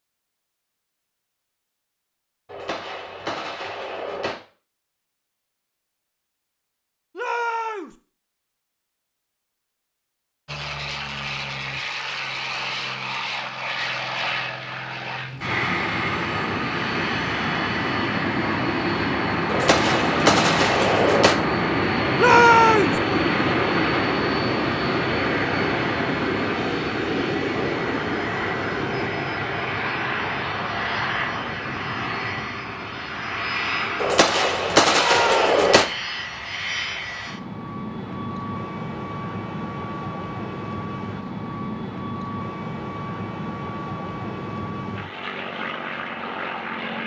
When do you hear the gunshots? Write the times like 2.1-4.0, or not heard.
2.5-4.3, 19.4-21.4, 34.0-35.9.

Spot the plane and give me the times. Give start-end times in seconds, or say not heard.
10.4-47.0.